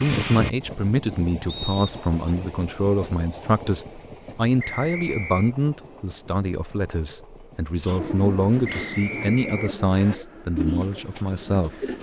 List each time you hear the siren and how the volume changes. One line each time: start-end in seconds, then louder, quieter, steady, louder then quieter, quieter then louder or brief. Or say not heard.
not heard.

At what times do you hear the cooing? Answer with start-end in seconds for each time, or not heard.
7.8-11.9.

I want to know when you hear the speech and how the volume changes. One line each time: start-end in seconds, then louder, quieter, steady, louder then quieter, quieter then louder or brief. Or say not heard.
0.0-11.7 steady.